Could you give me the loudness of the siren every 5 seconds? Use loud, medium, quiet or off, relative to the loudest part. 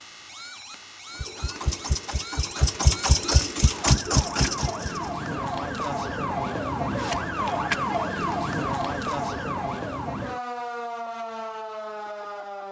medium, loud, medium.